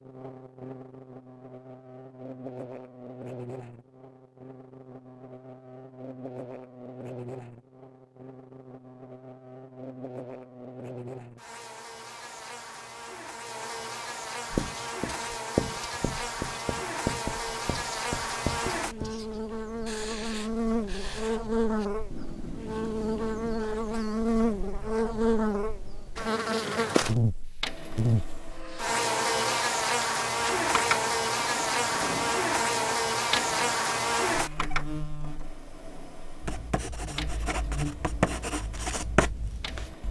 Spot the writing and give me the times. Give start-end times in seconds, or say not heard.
14.5-23.6, 36.4-40.0.